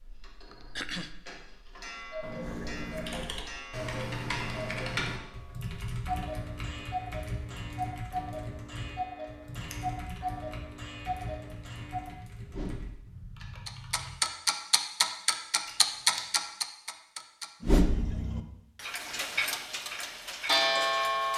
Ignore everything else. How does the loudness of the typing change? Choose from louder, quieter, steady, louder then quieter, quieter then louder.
quieter.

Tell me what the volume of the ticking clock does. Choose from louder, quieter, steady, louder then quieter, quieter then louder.
louder.